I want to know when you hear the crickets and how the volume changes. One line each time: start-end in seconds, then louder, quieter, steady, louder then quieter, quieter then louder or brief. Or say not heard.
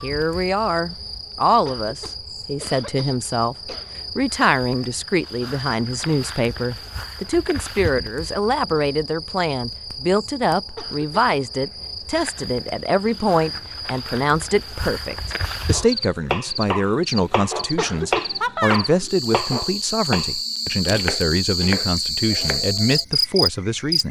0.0-24.0 louder.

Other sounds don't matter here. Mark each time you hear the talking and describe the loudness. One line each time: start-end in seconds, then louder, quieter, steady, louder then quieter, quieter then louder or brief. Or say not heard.
0.0-24.0 steady.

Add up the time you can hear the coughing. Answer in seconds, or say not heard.
3 s.